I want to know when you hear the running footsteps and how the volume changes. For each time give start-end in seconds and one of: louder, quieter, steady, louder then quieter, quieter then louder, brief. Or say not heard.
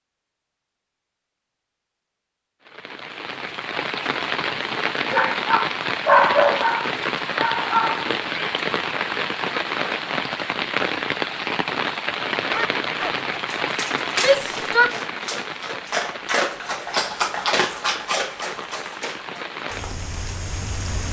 not heard.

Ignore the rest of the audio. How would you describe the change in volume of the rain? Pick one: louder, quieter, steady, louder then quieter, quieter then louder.
quieter.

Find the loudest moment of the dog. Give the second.
6 s.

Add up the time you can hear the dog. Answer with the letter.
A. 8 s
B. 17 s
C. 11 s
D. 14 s
C.